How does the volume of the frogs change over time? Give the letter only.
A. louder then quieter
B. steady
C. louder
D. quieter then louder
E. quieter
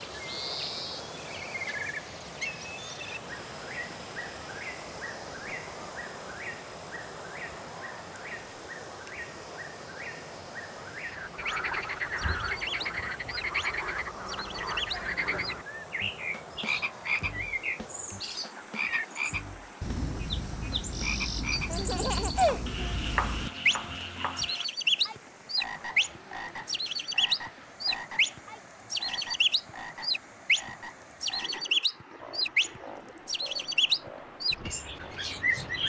E.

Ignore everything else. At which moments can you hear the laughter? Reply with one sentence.
You can hear the laughter from 21.7 to 22.9 s.